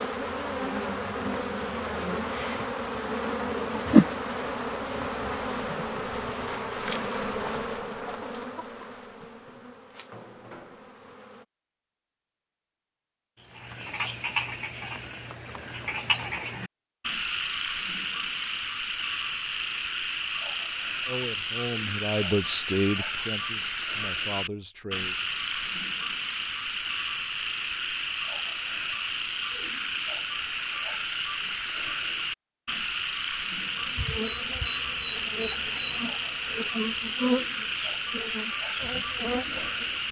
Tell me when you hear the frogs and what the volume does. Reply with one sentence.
The frogs can be heard from 13.3 to 40.0 s, at a steady volume.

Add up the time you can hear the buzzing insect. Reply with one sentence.
You can hear the buzzing insect for 18 seconds altogether.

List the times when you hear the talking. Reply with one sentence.
The talking can be heard from 21.1 to 25.1 s.